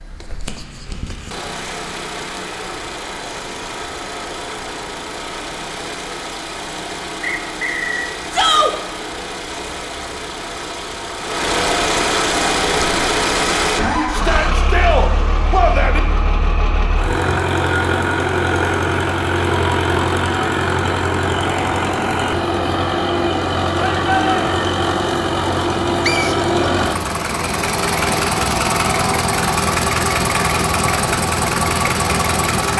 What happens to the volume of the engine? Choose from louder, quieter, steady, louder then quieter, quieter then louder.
louder.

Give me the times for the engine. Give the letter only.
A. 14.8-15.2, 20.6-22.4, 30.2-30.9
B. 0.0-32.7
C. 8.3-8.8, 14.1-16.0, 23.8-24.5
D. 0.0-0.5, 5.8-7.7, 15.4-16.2
B.